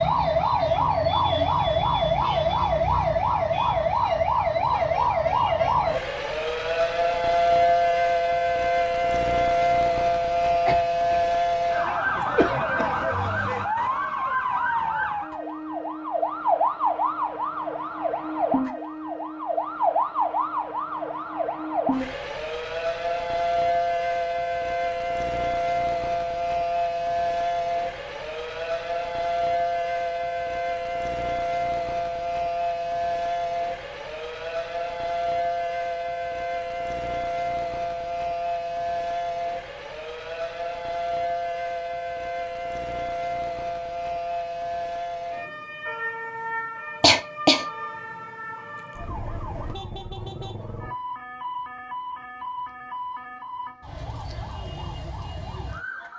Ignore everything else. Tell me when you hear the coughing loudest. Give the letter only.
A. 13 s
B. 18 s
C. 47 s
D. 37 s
C.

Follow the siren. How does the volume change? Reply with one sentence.
The loudness of the siren goes down.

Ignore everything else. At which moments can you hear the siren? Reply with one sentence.
The siren can be heard from 0.0 to 56.1 s.